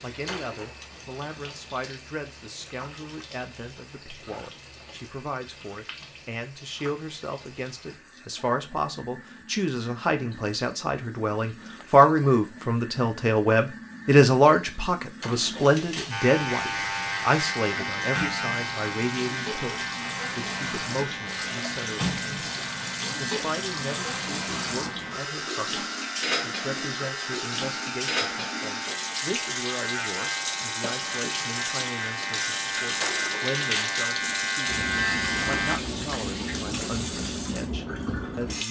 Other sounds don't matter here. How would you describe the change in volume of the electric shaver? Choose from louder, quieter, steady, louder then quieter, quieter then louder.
quieter then louder.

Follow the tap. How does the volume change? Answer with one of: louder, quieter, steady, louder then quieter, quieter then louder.
louder.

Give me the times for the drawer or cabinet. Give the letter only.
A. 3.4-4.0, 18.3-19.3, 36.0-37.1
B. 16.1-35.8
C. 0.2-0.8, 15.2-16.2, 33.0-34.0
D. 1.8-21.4
C.